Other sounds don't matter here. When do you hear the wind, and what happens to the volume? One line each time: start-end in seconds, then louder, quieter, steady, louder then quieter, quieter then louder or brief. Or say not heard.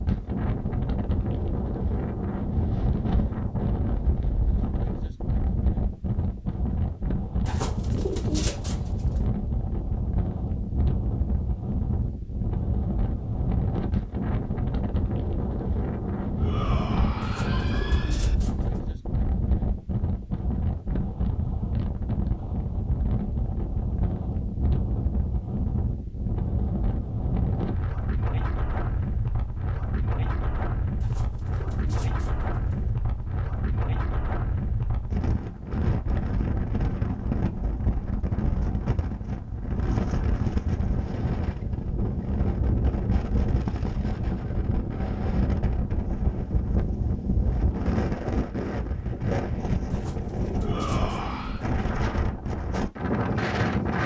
0.0-54.0 steady.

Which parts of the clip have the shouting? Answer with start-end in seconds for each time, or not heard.
16.4-18.4, 50.6-51.6.